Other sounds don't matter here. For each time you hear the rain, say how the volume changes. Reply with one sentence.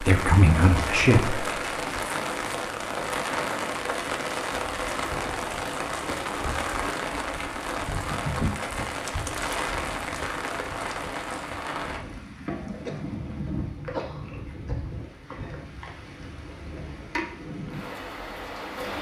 The rain can be heard from 0.0 to 18.9 s, getting quieter.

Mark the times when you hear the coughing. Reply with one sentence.
You can hear the coughing from 12.8 to 15.3 s.